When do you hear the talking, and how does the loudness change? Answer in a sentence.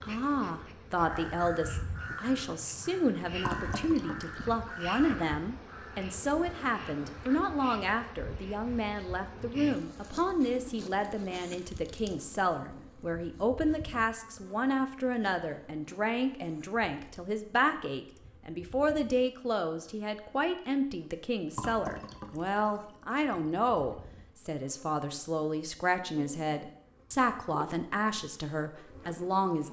The talking can be heard from 0.0 to 29.6 s, at a steady volume.